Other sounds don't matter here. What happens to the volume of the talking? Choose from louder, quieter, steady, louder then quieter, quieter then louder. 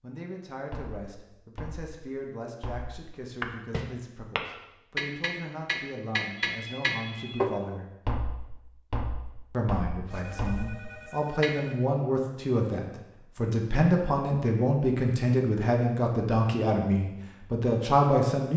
louder.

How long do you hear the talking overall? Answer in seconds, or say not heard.
17 s.